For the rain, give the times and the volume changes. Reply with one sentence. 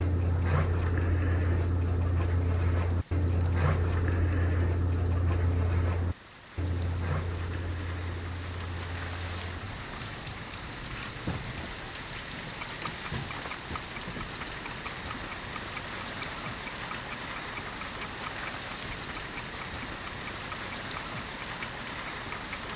The rain can be heard from 0.0 to 22.7 s, getting louder.